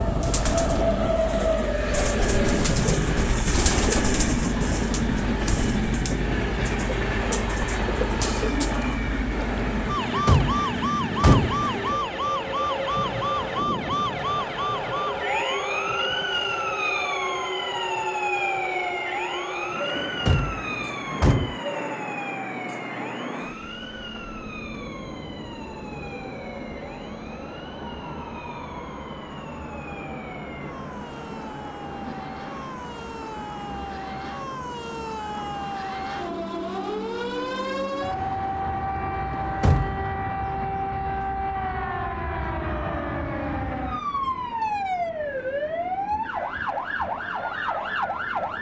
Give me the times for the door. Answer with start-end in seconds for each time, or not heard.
9.9-11.7, 19.9-21.6, 39.3-40.0.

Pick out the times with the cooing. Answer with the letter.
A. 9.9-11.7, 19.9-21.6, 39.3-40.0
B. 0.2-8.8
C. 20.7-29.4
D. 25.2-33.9
B.